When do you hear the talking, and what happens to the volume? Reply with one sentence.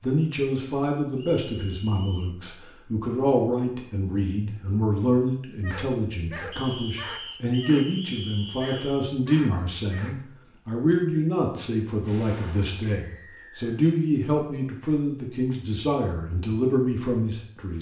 The talking can be heard from 0.0 to 17.7 s, at a steady volume.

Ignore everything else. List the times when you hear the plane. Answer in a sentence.
You can't hear the plane here.